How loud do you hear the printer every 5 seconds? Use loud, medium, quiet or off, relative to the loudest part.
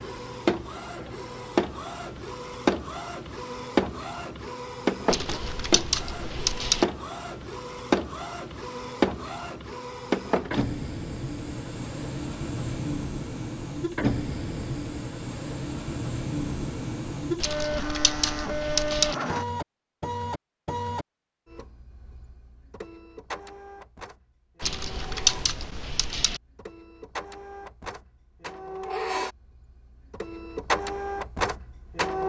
loud, loud, loud, loud, medium, medium, loud.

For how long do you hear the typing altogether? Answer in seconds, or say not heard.
5 s.